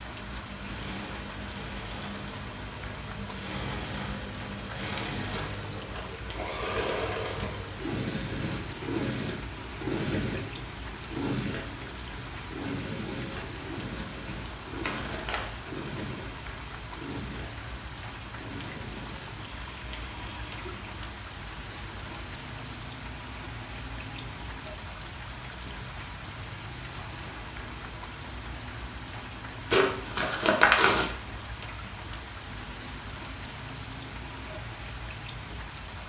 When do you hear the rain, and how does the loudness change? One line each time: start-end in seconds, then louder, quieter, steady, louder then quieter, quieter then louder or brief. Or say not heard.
0.0-36.0 steady.